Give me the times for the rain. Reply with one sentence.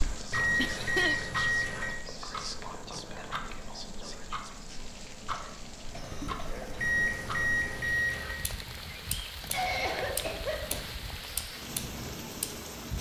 You can hear the rain from 0.0 to 12.9 s.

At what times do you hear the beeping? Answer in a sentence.
You can hear the beeping from 0.3 to 2.0 s and from 6.8 to 8.4 s.